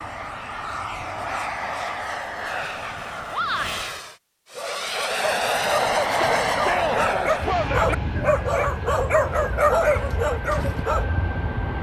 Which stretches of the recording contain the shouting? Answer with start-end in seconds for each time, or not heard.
3.3-3.9, 6.1-8.0.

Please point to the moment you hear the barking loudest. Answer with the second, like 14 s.
10 s.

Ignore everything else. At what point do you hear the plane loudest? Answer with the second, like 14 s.
6 s.